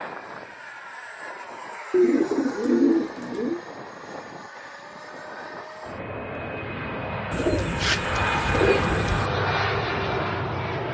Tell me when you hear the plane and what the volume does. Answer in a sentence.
The plane can be heard from 0.0 to 10.8 s, getting louder.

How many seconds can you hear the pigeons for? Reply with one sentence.
The pigeons can be heard for 4 seconds in total.